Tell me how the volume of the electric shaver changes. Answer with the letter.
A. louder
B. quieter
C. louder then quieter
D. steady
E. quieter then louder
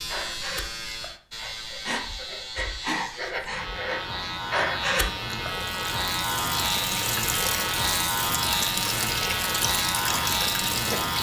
A.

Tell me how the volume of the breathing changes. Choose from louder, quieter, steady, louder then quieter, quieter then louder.
louder.